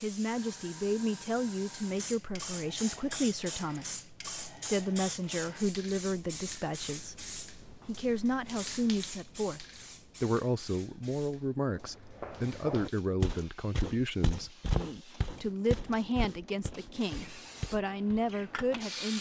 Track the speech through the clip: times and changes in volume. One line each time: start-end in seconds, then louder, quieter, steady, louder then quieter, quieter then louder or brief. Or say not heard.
0.0-19.1 steady.